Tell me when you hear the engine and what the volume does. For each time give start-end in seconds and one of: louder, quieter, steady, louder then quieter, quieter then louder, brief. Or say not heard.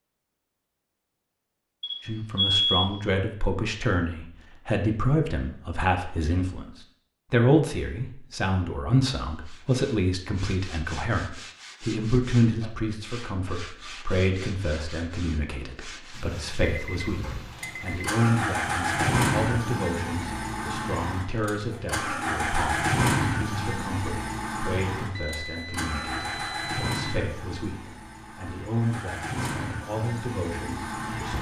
17.1-31.3 quieter.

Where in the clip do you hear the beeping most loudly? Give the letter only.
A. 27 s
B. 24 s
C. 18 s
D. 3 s
D.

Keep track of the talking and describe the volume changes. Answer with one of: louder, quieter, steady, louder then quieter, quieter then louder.
quieter.